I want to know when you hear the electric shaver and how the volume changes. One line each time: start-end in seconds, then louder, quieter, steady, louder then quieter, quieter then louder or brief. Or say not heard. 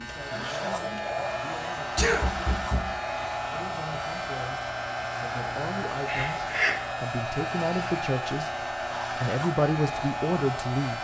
0.0-10.9 steady.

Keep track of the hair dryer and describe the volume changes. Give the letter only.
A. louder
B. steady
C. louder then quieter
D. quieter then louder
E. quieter
B.